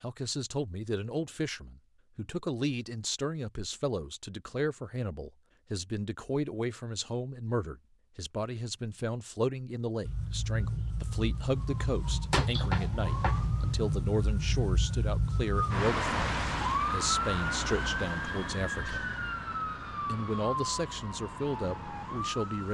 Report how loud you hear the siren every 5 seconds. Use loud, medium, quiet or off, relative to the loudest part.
off, off, loud, loud, medium.